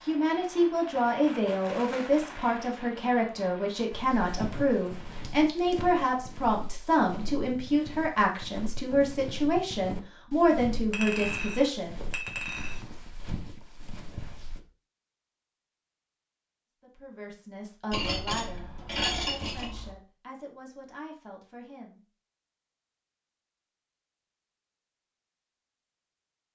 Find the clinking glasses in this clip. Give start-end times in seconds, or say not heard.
5.2-5.8, 10.9-12.8, 17.9-19.9.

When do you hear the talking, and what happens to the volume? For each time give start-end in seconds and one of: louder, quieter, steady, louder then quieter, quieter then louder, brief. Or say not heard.
0.1-12.0 steady
16.8-22.0 quieter.